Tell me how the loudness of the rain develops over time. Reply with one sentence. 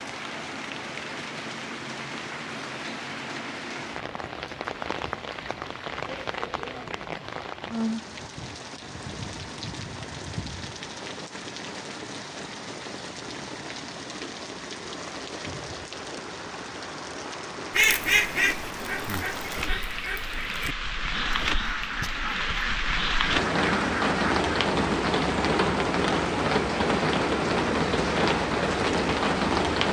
The loudness of the rain goes up.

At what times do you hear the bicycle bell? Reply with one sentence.
The bicycle bell can't be heard in this clip.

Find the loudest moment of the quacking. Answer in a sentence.
The volume of the quacking peaks at 18 seconds.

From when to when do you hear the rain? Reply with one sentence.
You can hear the rain from 0.0 to 29.8 s.